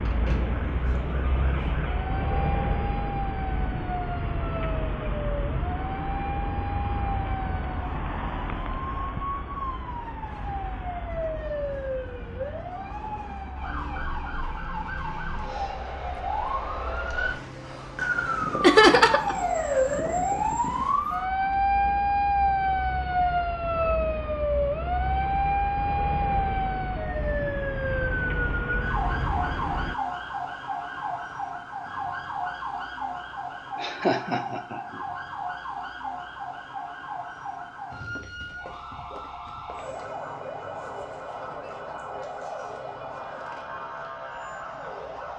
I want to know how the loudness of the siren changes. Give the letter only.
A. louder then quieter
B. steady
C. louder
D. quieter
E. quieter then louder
A.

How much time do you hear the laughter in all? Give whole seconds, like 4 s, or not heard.
2 s.